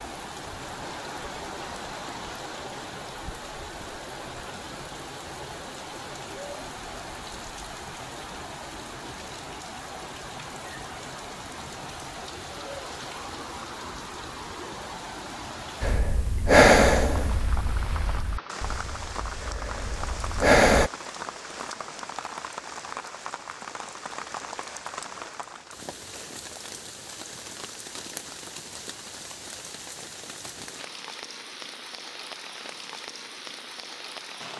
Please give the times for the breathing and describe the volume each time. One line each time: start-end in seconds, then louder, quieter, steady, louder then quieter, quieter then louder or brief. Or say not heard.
15.8-20.9 quieter then louder.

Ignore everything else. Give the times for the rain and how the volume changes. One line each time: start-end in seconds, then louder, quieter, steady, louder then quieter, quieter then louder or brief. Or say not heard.
0.0-34.5 steady.